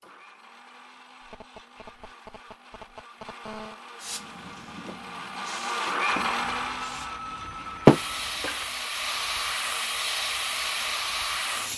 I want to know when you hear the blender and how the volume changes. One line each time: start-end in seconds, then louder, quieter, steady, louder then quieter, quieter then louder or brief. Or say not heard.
0.0-11.7 louder then quieter.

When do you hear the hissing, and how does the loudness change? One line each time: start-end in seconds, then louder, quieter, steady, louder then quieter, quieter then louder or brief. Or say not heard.
4.0-11.7 louder then quieter.